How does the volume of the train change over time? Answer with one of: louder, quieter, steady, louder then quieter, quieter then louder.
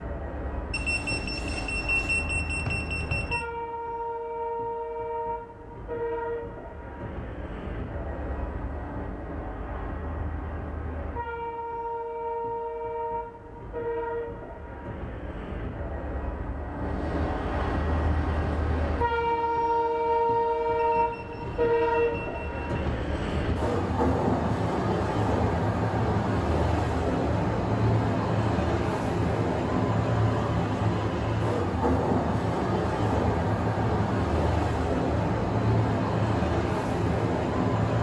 louder.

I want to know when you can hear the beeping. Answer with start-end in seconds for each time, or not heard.
0.7-3.5, 20.9-22.6.